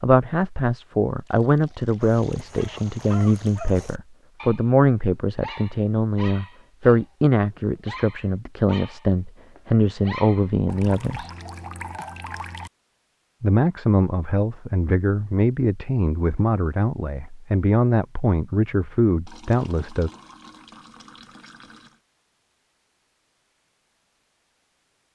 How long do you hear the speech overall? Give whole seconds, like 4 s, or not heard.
18 s.